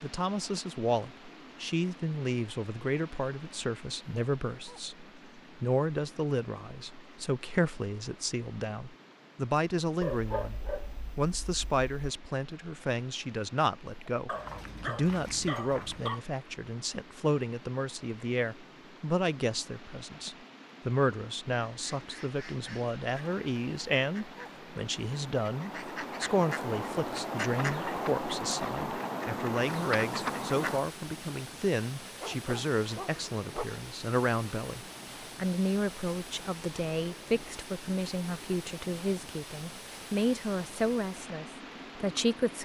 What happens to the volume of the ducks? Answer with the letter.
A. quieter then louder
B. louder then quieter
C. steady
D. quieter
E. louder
E.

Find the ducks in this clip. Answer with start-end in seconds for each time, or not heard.
21.7-30.8.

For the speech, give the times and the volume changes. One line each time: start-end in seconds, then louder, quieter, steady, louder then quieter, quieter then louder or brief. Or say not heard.
0.0-42.5 steady.